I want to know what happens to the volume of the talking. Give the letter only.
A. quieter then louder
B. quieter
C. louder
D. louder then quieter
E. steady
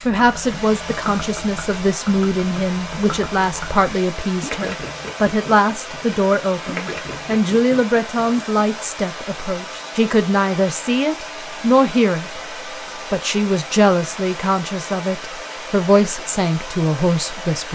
E.